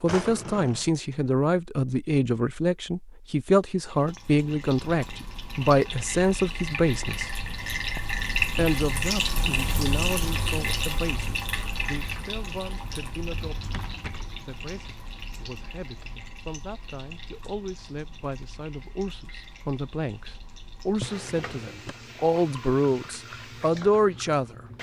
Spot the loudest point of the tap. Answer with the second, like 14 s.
9 s.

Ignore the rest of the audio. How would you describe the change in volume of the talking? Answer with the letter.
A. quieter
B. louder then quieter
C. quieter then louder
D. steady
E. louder
C.